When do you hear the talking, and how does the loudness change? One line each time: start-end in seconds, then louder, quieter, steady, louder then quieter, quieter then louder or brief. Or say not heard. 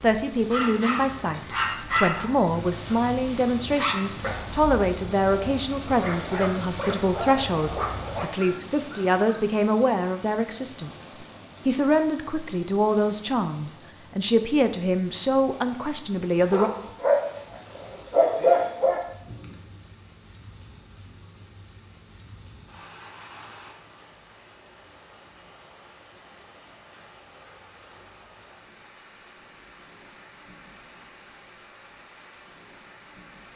0.0-16.7 steady.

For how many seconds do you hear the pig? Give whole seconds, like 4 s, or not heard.
not heard.